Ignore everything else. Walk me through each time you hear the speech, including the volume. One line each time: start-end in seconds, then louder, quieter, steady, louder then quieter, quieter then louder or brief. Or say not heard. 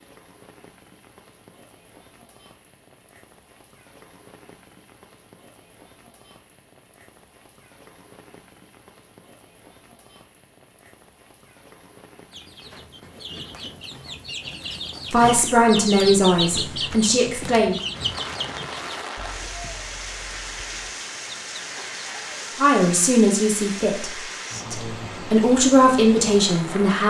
15.1-17.8 brief
22.6-27.0 quieter then louder.